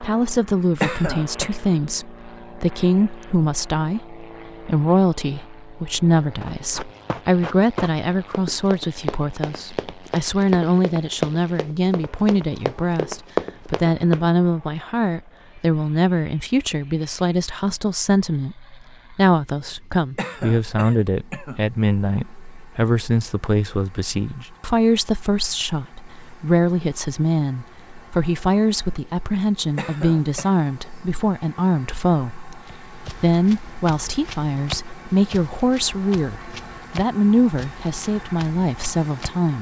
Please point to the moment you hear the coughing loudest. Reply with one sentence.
The loudest moment of the coughing is at 1 second.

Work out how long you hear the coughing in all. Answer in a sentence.
The coughing can be heard for 3 seconds in total.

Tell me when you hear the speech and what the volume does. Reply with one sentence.
You can hear the speech from 0.0 to 39.5 s, at a steady volume.